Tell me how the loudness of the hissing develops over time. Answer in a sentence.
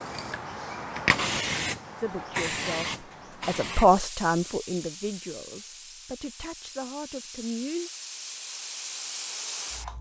The volume of the hissing goes down, then up.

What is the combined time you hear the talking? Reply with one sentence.
You can hear the talking for 6 seconds altogether.